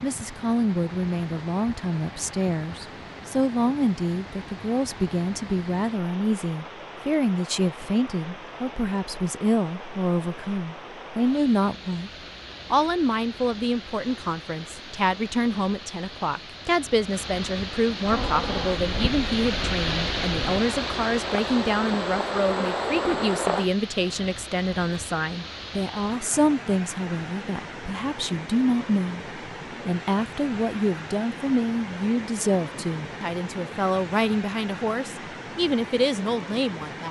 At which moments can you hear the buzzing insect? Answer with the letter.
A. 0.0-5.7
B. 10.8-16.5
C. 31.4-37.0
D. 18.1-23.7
D.